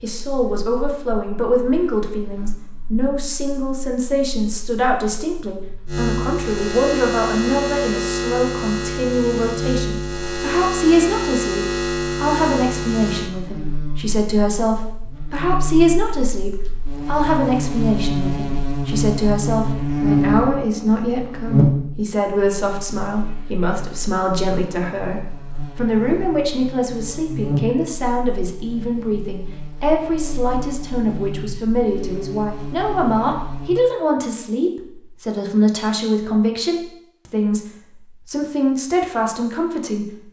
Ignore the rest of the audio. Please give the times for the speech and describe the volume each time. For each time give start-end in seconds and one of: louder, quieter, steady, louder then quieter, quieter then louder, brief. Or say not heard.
0.0-40.1 steady.